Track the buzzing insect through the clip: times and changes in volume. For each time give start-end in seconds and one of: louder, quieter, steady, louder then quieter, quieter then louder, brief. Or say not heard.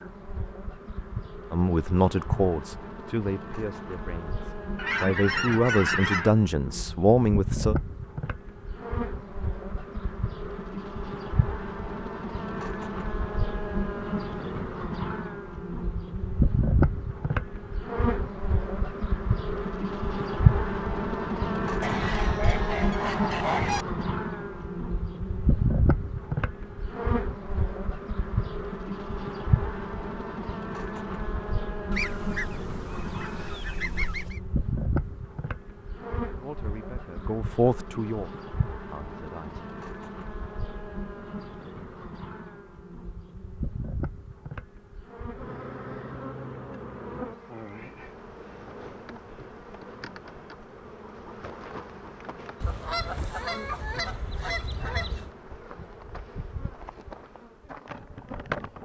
0.0-58.8 louder then quieter.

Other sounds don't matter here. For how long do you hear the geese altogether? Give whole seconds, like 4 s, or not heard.
9 s.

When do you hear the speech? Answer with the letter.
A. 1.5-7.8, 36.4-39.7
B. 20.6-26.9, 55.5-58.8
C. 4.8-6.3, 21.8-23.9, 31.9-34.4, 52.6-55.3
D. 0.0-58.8
A.